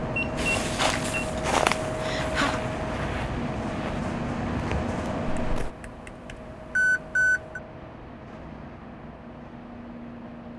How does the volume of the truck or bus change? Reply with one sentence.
The loudness of the truck or bus goes down.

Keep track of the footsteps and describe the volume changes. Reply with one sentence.
The loudness of the footsteps goes down, then up.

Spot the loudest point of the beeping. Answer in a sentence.
The volume of the beeping peaks at 7 seconds.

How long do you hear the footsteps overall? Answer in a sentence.
You can hear the footsteps for 5 seconds altogether.